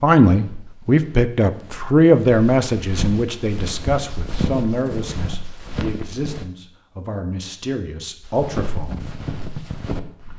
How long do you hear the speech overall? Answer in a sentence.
The speech can be heard for 9 seconds in total.